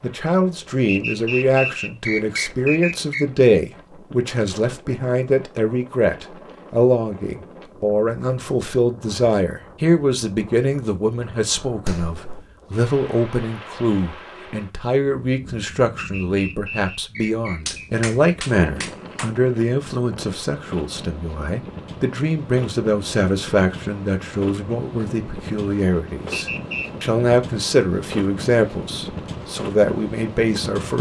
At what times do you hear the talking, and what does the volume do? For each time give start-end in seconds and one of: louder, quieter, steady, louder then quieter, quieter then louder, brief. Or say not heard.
0.0-30.9 steady.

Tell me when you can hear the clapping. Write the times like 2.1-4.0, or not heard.
11.8-12.4, 17.6-19.3.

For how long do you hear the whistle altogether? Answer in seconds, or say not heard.
5 s.